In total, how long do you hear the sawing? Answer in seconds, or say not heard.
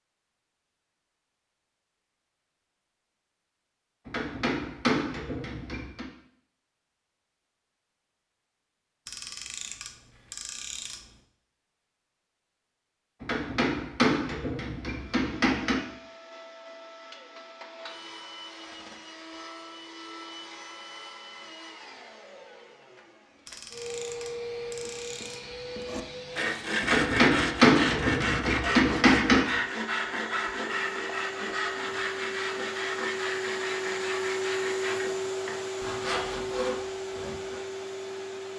12 s.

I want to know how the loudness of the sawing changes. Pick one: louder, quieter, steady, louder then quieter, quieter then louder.
quieter.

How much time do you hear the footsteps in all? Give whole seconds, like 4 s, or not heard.
not heard.